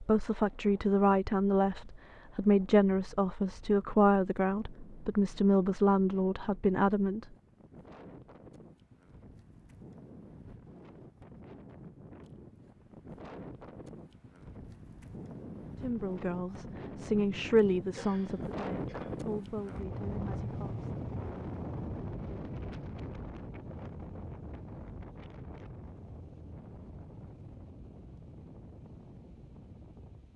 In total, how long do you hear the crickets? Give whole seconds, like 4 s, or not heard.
not heard.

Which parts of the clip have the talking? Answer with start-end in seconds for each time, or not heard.
0.0-7.2, 15.8-20.9.